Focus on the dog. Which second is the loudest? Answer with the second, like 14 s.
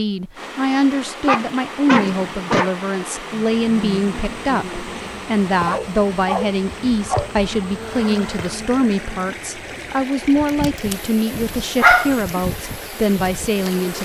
12 s.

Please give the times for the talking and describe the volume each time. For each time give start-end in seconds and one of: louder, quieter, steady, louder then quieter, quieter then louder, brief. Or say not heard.
0.0-13.9 steady.